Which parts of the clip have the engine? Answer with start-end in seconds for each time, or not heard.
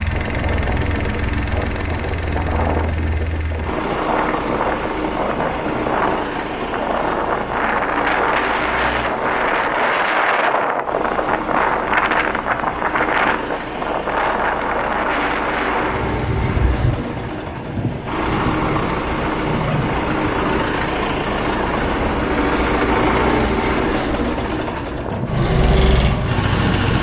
0.0-26.9.